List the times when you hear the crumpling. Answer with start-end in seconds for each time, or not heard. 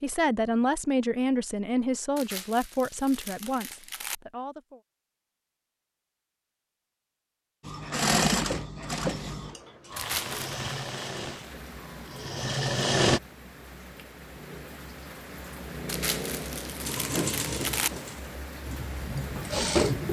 2.1-4.2, 9.9-10.4, 15.8-17.9.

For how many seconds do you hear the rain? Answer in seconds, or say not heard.
10 s.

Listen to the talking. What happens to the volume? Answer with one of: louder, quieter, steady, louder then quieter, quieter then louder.
quieter.